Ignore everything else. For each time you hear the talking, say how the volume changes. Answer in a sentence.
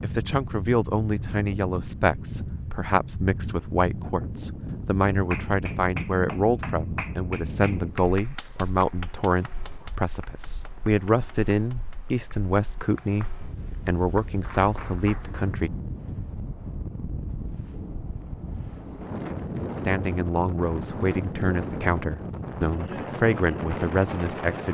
You can hear the talking from 0.0 to 15.7 s, at a steady volume; and from 19.9 to 24.6 s, at a steady volume.